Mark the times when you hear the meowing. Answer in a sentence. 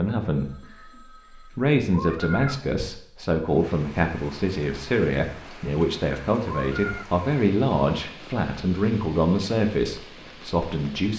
The meowing can be heard from 1.9 to 2.6 s and from 6.5 to 7.0 s.